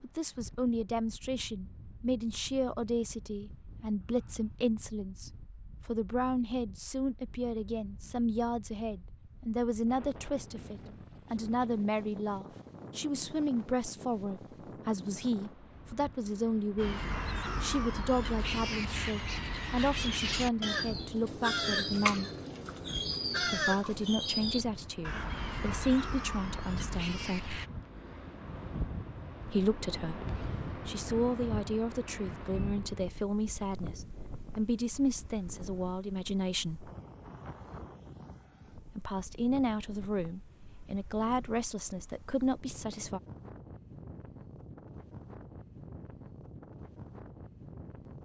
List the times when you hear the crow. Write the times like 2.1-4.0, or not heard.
16.8-27.7.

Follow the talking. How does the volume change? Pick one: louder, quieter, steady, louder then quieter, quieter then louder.
steady.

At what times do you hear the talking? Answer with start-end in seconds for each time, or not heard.
0.0-17.0, 17.6-22.3, 23.4-27.6, 29.4-36.9, 38.9-43.2.